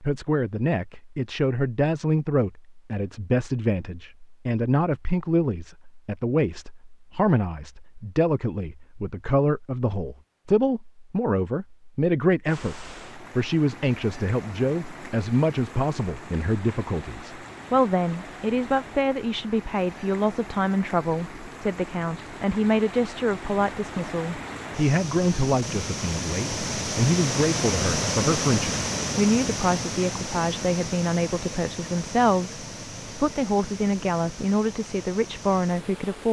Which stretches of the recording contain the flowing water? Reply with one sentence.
You can hear the flowing water from 12.4 to 36.2 s.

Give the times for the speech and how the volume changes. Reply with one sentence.
You can hear the speech from 0.0 to 36.2 s, at a steady volume.